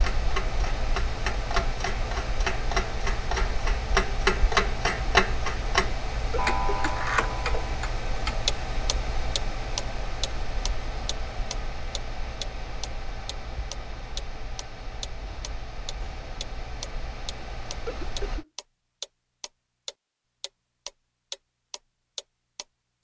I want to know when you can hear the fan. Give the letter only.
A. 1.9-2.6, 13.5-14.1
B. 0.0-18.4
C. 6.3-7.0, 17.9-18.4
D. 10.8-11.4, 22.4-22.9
B.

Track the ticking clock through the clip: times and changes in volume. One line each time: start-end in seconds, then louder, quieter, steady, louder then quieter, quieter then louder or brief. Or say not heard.
0.0-22.9 quieter.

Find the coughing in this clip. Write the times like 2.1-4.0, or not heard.
6.3-7.0, 17.9-18.4.